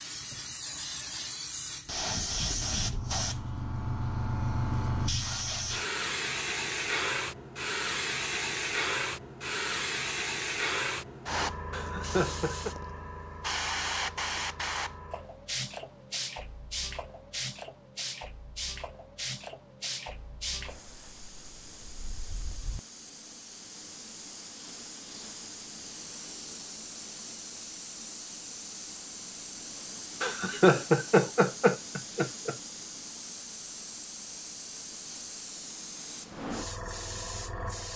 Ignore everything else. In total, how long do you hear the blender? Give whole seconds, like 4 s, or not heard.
not heard.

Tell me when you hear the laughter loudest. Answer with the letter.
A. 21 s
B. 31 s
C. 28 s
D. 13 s
B.